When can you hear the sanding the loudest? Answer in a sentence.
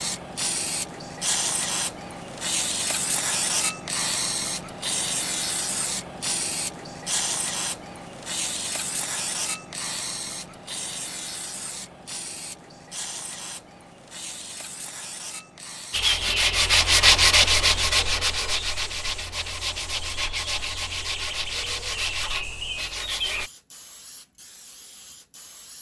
The volume of the sanding peaks at 17 seconds.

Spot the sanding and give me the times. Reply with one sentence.
The sanding can be heard from 15.9 to 23.5 s.